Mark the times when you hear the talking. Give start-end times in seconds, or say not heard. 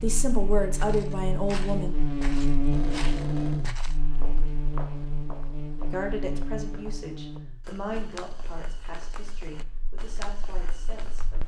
0.0-1.9, 5.8-11.4.